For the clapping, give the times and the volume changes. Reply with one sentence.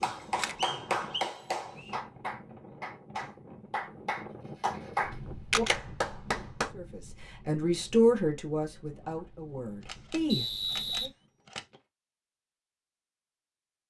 You can hear the clapping from 0.0 to 6.7 s, getting quieter then louder.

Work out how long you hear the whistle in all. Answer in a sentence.
The whistle can be heard for 3 seconds in total.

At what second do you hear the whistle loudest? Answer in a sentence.
The loudest moment of the whistle is at 11 seconds.